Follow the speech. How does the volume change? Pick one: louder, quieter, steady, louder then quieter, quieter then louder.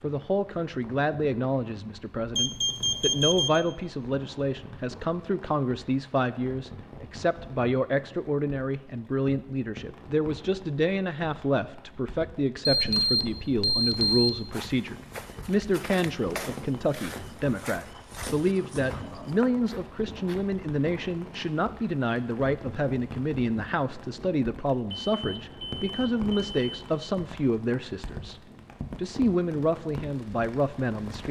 steady.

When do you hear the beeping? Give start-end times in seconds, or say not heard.
2.4-3.6, 12.7-14.6, 24.9-27.0.